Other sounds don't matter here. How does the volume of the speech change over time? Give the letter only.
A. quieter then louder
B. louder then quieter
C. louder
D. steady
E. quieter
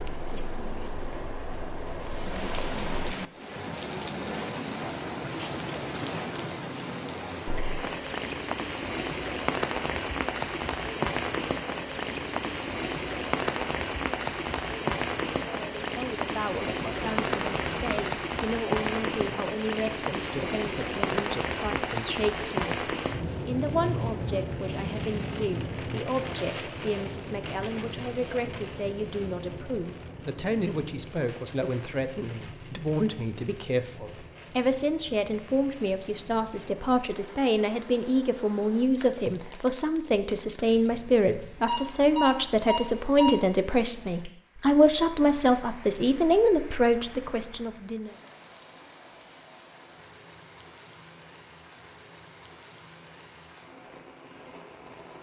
C.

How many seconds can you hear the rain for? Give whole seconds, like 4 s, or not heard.
55 s.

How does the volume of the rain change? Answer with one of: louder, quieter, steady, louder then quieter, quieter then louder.
quieter.